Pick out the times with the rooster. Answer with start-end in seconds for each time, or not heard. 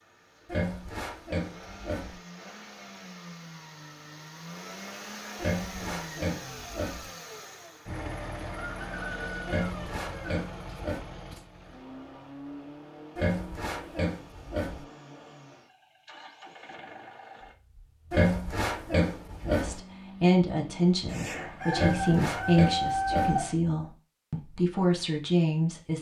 8.6-10.4, 21.1-23.6.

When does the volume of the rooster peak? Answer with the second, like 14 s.
23 s.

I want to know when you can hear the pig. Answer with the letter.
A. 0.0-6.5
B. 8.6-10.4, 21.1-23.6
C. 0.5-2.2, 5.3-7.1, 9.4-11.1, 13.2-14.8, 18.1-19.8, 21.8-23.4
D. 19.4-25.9
C.